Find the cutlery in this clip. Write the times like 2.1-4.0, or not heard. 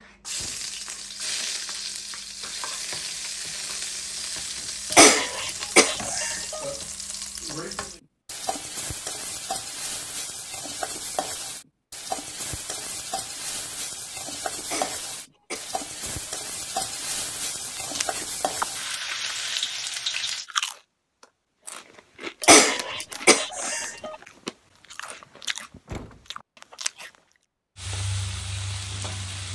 not heard.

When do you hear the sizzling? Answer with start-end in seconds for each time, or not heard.
0.0-20.4, 27.8-29.5.